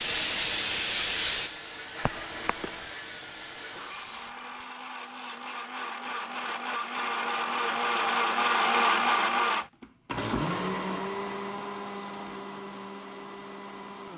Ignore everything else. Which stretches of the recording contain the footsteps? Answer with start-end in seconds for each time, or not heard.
not heard.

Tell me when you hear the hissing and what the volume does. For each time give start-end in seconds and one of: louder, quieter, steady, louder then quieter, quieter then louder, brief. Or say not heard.
0.0-4.7 quieter.